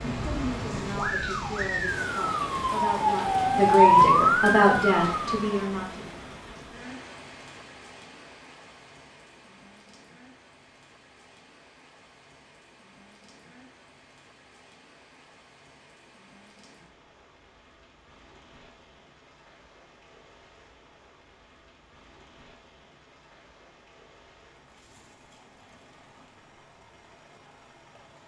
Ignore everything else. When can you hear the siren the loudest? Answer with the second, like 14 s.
4 s.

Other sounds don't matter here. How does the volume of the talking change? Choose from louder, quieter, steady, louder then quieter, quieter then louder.
louder.